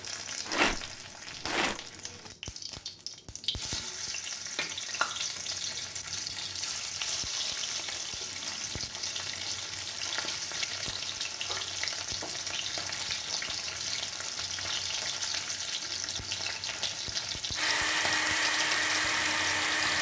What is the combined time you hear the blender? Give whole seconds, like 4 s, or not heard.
2 s.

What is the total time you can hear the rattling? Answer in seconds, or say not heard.
2 s.